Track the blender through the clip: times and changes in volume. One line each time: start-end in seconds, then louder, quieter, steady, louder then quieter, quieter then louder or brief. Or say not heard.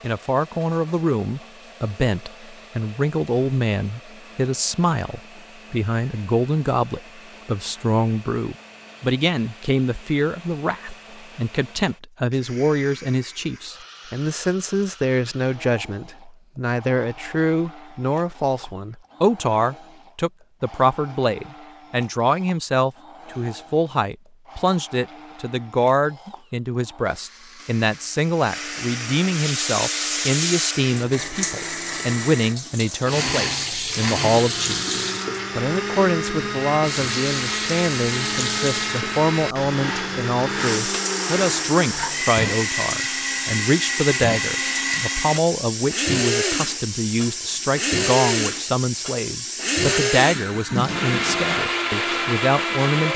0.0-53.1 louder.